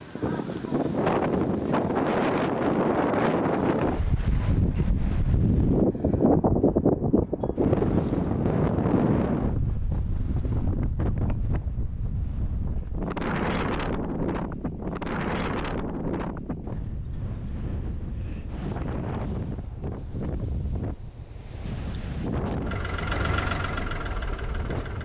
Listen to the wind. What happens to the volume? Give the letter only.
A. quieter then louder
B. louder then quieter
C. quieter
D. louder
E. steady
C.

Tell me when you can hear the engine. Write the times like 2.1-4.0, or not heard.
22.6-25.0.